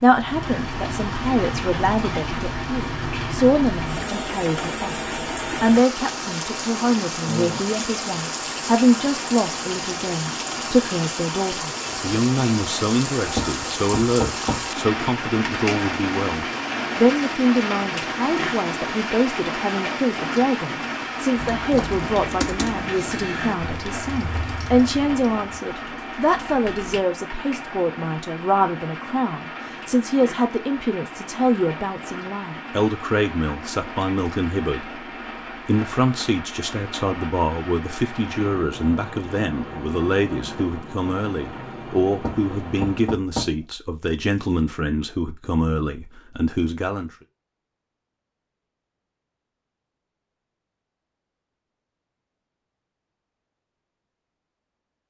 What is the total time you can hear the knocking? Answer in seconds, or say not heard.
3 s.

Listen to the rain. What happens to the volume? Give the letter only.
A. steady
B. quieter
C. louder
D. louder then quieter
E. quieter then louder
B.